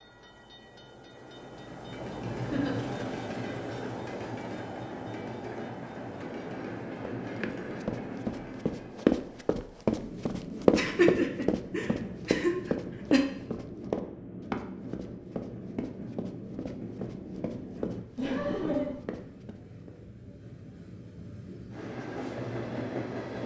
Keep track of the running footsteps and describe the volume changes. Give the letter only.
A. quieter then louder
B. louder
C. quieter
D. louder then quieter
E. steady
C.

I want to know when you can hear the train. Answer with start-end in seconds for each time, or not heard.
0.0-23.4.